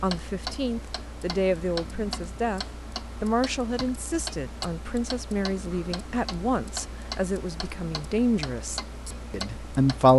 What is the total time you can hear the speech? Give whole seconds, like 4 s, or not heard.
10 s.